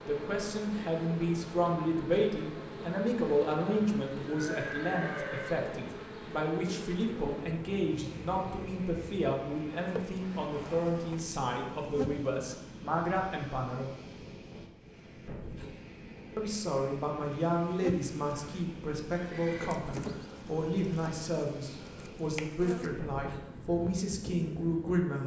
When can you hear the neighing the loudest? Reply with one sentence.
The volume of the neighing peaks at 5 seconds.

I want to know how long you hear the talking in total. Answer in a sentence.
The talking can be heard for 23 seconds in total.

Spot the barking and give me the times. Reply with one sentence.
You can't hear the barking here.